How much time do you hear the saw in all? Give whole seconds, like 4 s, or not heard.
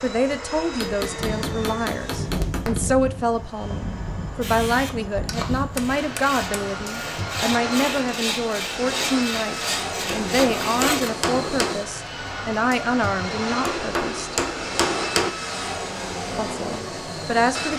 7 s.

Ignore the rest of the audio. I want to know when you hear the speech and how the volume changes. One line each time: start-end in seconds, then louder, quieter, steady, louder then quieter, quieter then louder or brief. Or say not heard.
0.0-14.3 steady
16.4-17.7 brief.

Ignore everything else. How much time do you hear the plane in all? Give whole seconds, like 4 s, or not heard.
18 s.